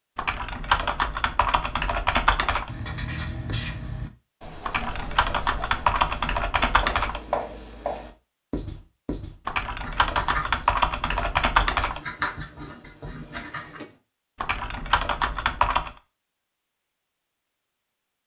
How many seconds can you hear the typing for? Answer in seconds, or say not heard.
9 s.